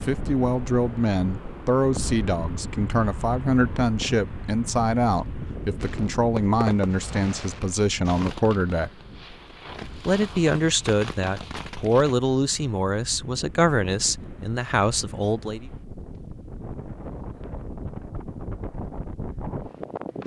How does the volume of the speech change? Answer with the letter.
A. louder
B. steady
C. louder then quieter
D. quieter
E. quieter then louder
B.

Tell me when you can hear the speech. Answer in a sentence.
The speech can be heard from 0.0 to 8.9 s and from 10.1 to 15.7 s.